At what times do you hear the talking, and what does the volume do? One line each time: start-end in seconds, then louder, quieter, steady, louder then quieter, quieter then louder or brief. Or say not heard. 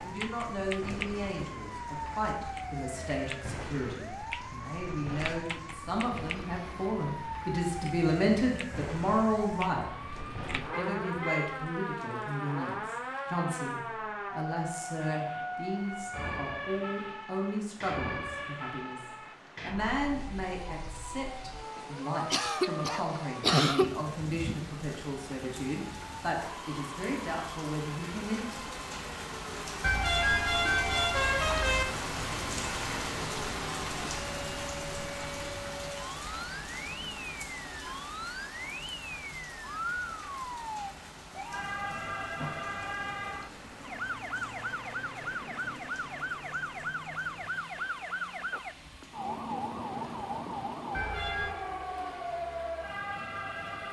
0.0-9.8 louder
10.5-28.7 steady.